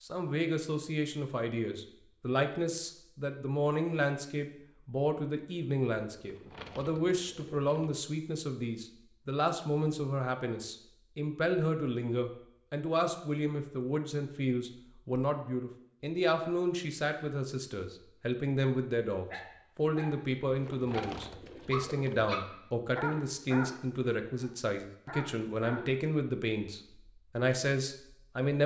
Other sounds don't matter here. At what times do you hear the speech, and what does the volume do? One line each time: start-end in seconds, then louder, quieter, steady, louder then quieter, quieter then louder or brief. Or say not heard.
0.0-28.6 steady.